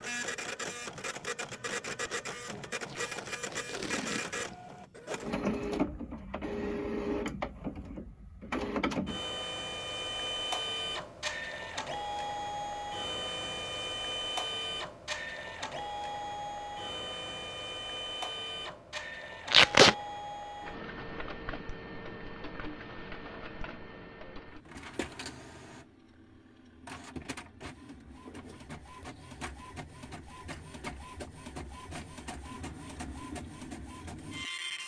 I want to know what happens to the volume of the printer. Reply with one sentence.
The volume of the printer goes down.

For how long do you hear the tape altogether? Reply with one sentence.
The tape can be heard for 2 seconds in total.